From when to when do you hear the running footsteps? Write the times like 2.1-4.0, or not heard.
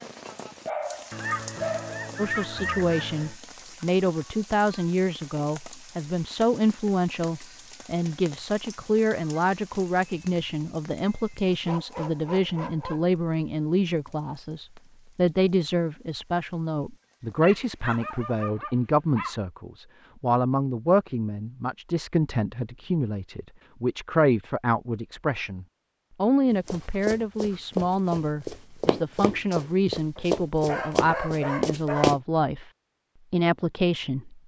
26.6-32.2.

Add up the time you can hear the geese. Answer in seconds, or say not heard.
2 s.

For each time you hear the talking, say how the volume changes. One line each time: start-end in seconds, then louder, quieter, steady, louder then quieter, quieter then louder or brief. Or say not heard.
2.1-32.6 steady
33.3-34.4 brief.